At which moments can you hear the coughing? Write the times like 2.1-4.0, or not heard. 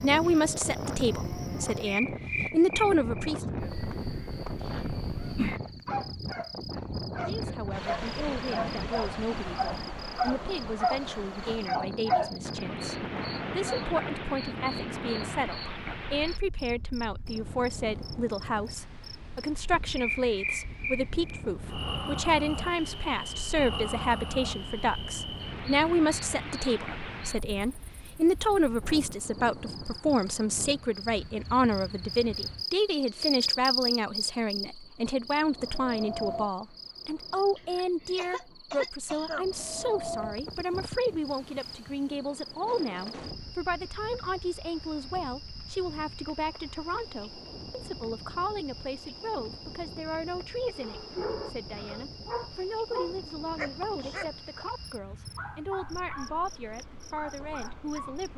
37.5-39.5.